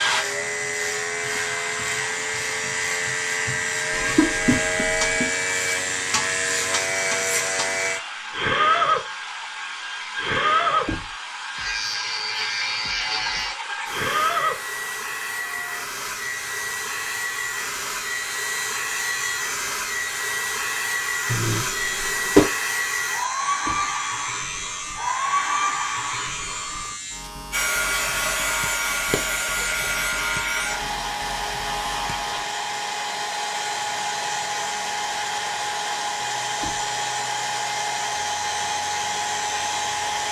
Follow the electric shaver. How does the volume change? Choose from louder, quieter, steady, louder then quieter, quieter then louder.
quieter.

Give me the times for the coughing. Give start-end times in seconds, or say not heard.
3.9-5.2, 21.2-22.5, 29.1-29.6.